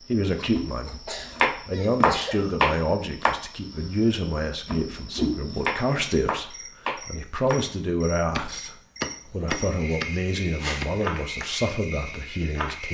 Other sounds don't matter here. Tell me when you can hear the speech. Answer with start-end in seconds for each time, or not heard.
0.1-12.8.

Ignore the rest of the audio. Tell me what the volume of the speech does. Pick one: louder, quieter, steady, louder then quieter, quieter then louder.
steady.